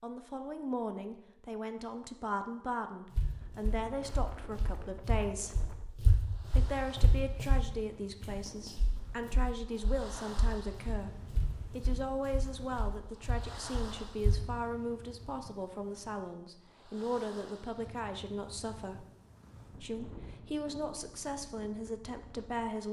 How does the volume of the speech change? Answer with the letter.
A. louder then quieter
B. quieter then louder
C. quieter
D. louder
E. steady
E.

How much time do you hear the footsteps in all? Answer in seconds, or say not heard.
11 s.